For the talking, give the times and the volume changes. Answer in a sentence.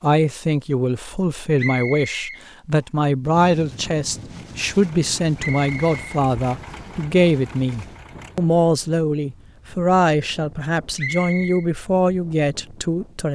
The talking can be heard from 0.0 to 13.3 s, at a steady volume.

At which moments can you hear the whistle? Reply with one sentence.
You can hear the whistle from 1.6 to 2.4 s, from 5.3 to 7.0 s and from 10.9 to 11.7 s.